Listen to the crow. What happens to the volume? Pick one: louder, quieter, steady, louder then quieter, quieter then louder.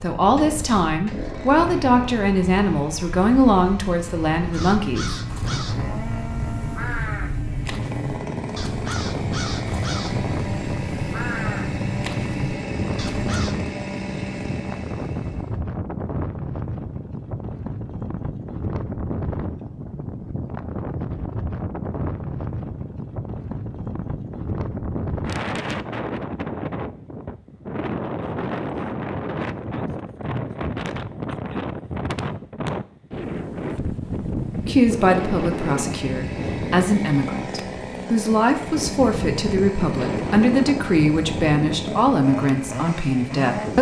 steady.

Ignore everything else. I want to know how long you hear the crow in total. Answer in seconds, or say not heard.
9 s.